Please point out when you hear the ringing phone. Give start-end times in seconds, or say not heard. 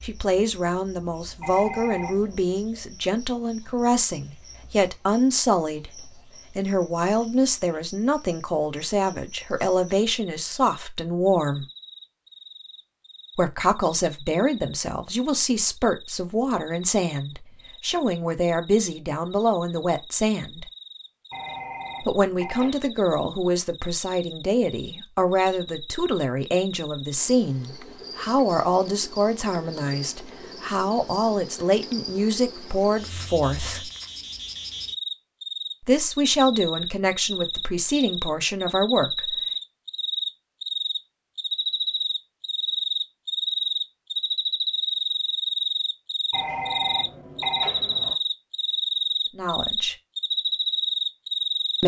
1.4-2.4, 21.3-22.8, 46.3-48.1.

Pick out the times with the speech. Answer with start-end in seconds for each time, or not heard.
0.0-11.7, 13.3-20.6, 22.0-33.9, 35.9-39.4, 49.3-50.0.